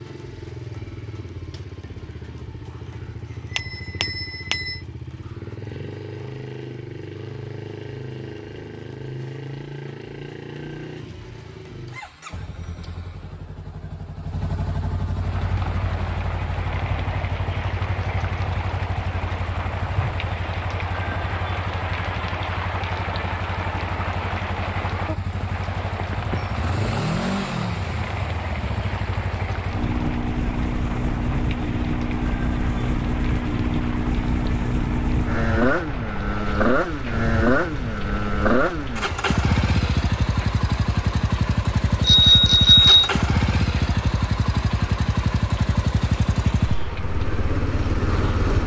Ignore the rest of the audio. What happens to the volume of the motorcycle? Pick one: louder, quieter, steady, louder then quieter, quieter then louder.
louder.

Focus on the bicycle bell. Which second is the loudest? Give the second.
43 s.